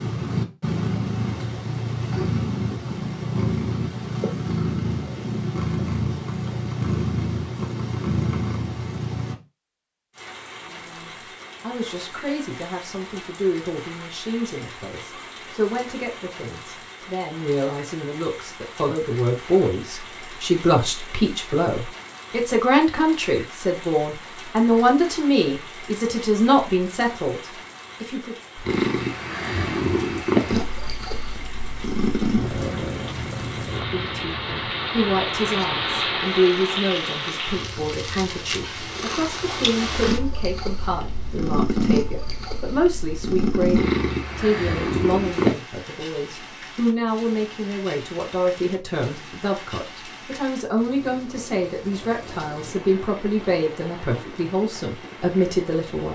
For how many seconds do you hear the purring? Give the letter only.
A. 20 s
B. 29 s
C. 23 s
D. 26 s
D.